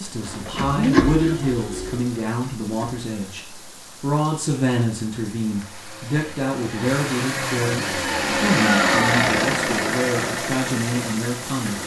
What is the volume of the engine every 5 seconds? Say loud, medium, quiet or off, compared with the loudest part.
loud, loud, medium.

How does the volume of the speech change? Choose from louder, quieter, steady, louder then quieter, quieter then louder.
steady.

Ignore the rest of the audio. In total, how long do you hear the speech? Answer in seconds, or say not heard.
12 s.